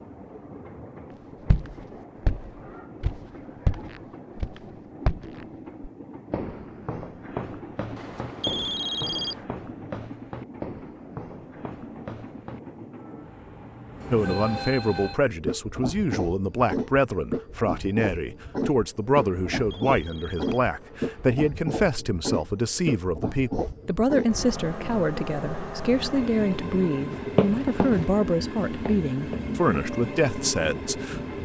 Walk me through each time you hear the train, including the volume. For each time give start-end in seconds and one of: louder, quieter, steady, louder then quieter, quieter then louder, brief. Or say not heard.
0.0-31.3 louder.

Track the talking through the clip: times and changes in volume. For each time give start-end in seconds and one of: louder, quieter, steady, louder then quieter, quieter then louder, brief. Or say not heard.
14.1-31.2 steady.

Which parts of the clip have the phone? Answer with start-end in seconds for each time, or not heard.
8.0-9.4, 19.2-21.4.